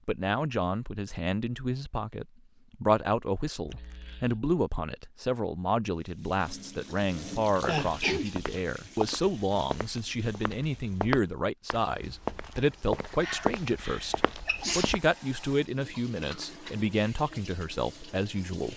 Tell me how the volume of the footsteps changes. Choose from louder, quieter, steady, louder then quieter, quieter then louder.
quieter then louder.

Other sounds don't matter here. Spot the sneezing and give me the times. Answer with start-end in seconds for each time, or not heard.
3.6-4.4, 7.7-8.3, 13.1-14.9.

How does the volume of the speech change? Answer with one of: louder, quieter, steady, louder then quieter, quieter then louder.
steady.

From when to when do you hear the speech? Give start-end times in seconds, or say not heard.
0.1-18.7.